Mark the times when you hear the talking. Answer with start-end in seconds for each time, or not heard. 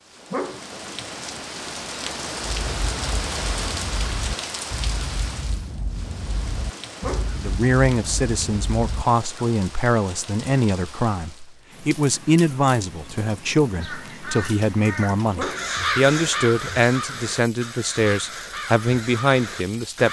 7.3-20.0.